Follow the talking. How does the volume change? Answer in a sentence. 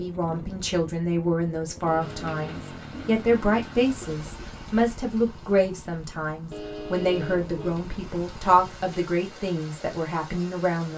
The loudness of the talking stays about the same.